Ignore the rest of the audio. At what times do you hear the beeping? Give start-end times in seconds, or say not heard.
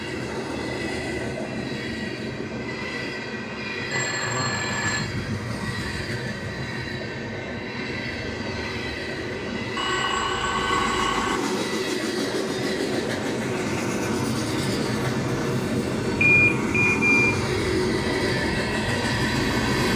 3.9-5.0, 9.8-11.4, 16.2-17.4.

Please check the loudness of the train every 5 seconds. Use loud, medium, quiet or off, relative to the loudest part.
medium, medium, loud, loud.